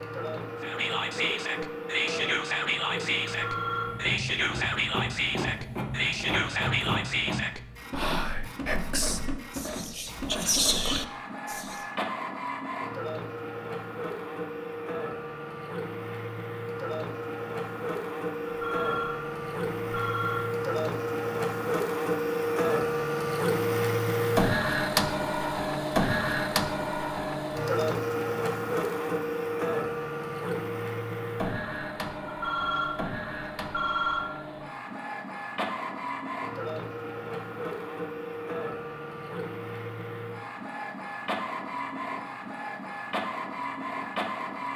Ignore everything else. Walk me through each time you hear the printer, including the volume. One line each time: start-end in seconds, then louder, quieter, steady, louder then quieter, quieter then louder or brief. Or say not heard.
0.0-44.7 louder then quieter.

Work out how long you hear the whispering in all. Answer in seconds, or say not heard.
11 s.